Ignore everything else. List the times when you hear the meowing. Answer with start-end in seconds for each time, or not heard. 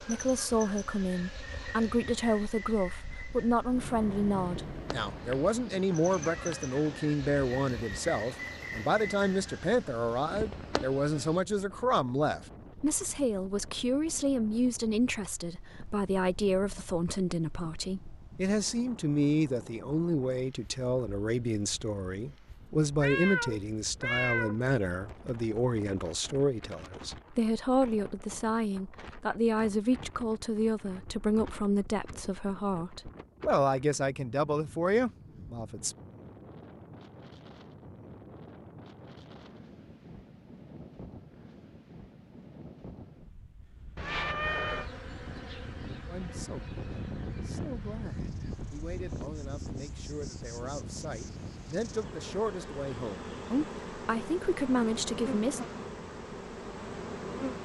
5.1-7.0, 22.9-24.6, 44.0-44.9.